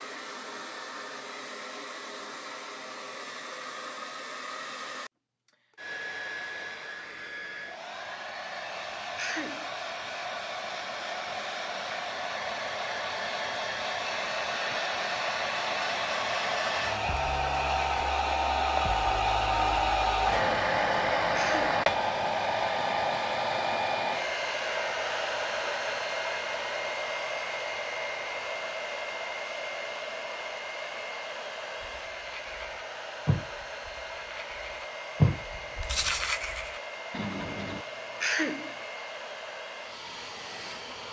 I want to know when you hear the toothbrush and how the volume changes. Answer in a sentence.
You can hear the toothbrush from 31.8 to 37.9 s, getting louder then quieter.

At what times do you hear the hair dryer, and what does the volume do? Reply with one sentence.
The hair dryer can be heard from 0.0 to 41.0 s, getting louder then quieter.